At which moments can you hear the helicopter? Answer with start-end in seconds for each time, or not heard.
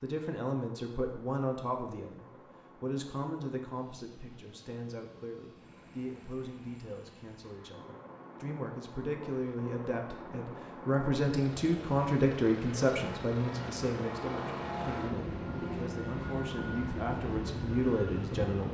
0.0-18.6.